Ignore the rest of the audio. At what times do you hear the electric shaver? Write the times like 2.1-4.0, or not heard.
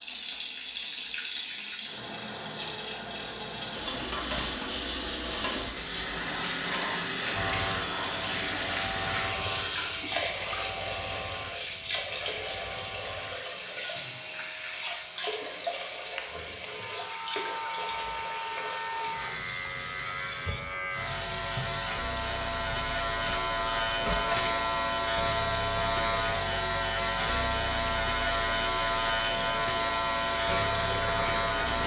7.3-31.8.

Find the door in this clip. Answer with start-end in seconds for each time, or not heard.
not heard.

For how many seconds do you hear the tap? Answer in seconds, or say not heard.
32 s.